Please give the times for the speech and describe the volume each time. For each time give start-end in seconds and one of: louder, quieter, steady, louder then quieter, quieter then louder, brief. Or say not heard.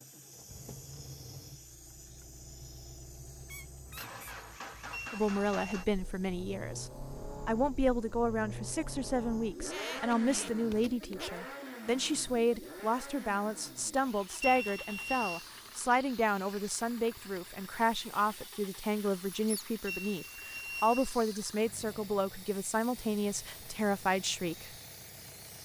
5.1-24.7 steady.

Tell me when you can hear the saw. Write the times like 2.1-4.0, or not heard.
not heard.